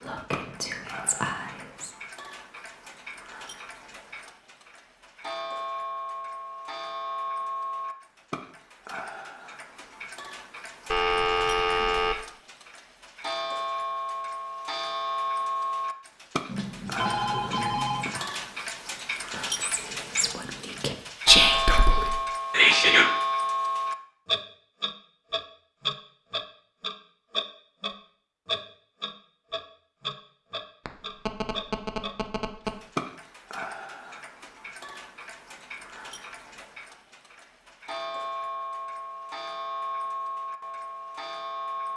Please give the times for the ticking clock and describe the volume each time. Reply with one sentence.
You can hear the ticking clock from 0.0 to 41.9 s, getting louder then quieter.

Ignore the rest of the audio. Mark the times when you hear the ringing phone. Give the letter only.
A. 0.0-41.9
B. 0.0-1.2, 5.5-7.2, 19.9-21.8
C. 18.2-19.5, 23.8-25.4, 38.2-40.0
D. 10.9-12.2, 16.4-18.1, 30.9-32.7
D.